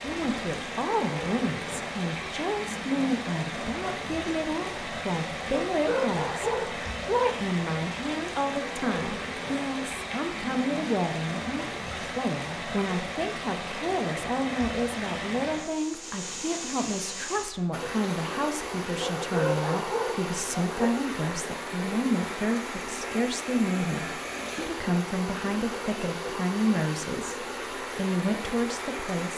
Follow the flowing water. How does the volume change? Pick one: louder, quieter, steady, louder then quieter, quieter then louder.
steady.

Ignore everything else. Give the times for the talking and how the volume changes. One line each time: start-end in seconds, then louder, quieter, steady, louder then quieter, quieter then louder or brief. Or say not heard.
0.0-29.3 steady.